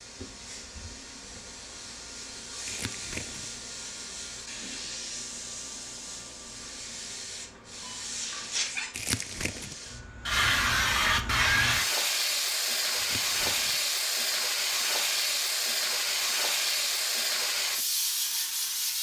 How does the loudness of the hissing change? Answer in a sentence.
The volume of the hissing goes up.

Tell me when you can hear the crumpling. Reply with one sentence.
You can hear the crumpling from 2.6 to 3.5 s, from 8.9 to 9.8 s and from 12.9 to 13.8 s.